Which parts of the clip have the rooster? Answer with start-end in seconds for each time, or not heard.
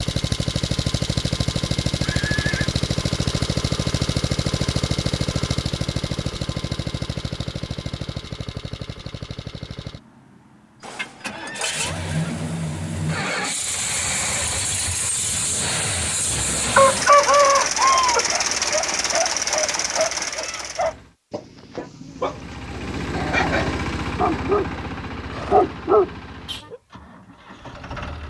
16.4-18.2.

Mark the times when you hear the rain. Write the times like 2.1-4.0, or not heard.
not heard.